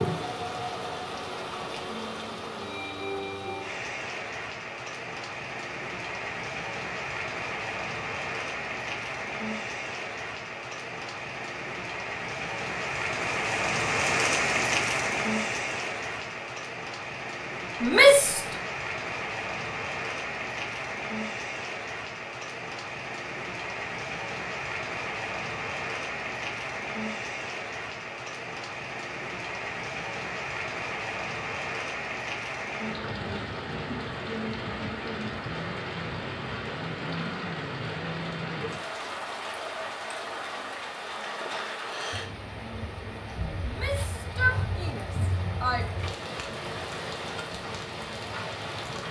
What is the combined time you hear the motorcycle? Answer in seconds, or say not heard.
not heard.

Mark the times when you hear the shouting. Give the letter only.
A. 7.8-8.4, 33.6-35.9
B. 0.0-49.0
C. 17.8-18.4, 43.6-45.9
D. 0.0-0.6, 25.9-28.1
C.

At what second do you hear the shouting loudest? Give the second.
18 s.